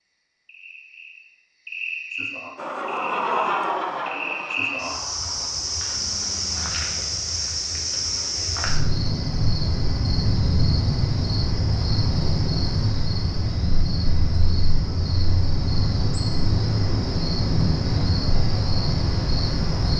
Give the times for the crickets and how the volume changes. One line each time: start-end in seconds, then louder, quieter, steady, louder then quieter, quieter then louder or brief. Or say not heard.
0.0-19.9 louder.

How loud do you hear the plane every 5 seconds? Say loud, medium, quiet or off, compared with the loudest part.
loud, quiet, off, off.